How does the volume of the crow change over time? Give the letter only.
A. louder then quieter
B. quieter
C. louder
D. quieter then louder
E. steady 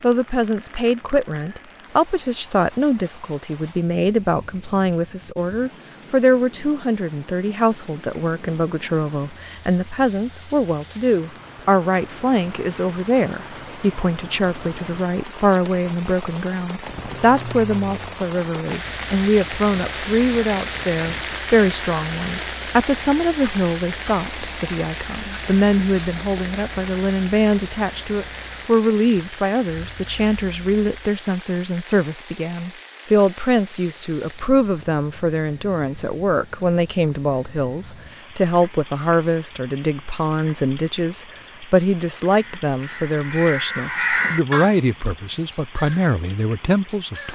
A.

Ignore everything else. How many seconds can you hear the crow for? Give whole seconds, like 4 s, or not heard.
5 s.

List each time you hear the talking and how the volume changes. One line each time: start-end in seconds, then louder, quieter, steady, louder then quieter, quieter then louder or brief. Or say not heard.
0.0-47.2 steady.